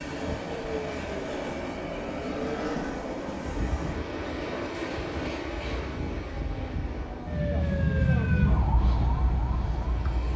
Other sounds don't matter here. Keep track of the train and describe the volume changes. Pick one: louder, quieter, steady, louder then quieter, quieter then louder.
quieter.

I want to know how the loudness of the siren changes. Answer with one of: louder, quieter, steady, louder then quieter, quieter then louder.
louder.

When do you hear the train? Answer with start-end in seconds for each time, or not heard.
0.0-10.3.